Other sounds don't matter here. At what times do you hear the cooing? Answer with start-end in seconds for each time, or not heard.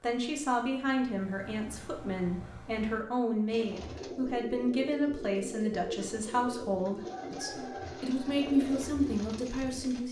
3.5-10.0.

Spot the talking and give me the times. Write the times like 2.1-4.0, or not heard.
0.0-10.0.